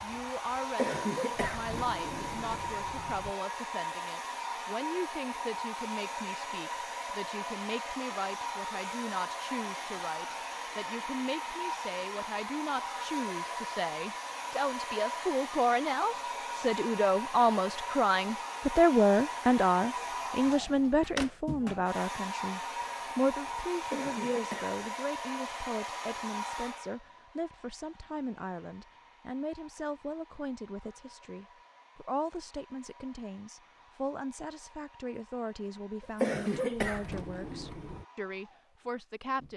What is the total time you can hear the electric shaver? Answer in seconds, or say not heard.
not heard.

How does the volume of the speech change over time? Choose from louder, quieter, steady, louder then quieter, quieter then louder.
louder then quieter.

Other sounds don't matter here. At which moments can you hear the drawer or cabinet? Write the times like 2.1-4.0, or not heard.
1.3-3.4, 20.4-21.4, 36.7-38.0.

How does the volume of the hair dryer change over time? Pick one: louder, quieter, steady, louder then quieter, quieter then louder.
quieter.